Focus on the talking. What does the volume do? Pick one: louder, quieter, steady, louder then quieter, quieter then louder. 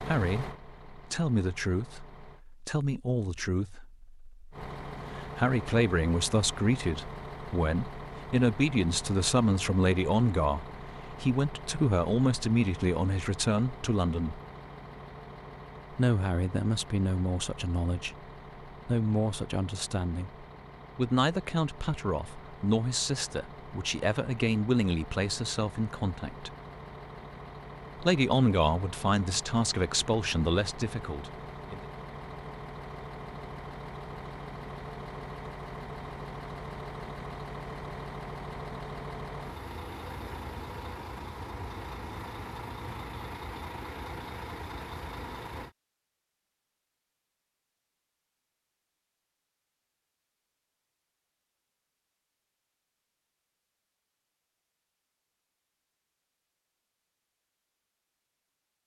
steady.